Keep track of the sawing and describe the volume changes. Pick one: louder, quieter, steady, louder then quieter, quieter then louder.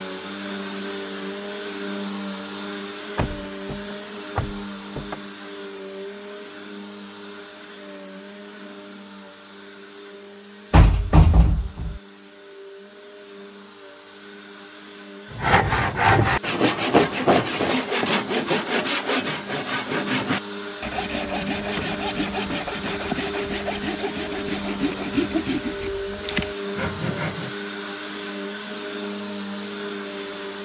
quieter.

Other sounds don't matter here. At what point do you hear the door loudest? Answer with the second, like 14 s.
11 s.